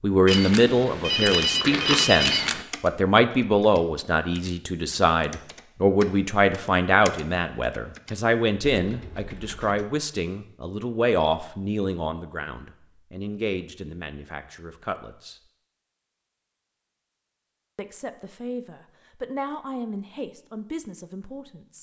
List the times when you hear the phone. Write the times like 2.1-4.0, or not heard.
0.2-2.6.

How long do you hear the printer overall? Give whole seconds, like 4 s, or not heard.
not heard.